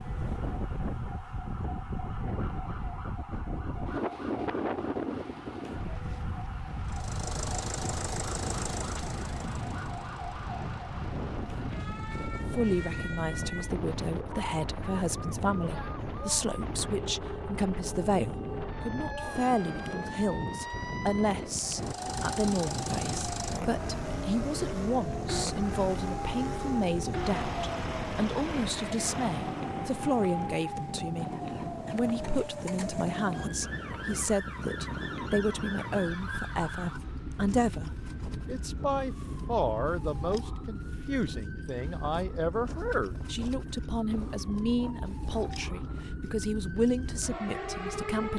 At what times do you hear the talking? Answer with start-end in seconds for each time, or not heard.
12.5-48.3.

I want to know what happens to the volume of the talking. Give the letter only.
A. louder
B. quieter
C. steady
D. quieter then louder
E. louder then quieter
C.